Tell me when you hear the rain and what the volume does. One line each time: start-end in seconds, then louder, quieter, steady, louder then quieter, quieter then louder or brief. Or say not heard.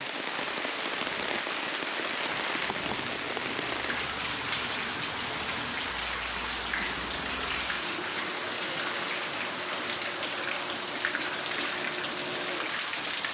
0.0-13.3 steady.